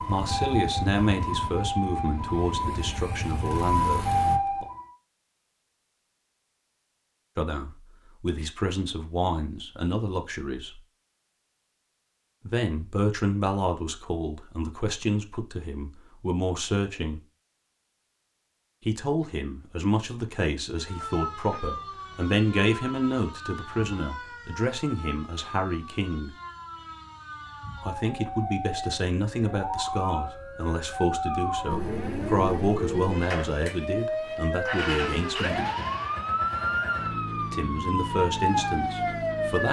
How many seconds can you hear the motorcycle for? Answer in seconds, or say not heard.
12 s.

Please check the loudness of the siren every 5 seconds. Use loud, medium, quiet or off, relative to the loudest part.
loud, off, off, off, medium, medium, loud, loud.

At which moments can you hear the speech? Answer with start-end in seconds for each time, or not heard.
0.0-4.7, 7.3-10.8, 12.4-17.2, 18.9-26.4, 27.8-35.6, 37.5-39.6.